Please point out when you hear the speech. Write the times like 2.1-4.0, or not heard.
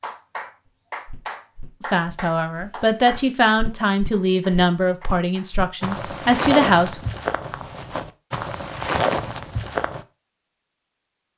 1.9-7.0.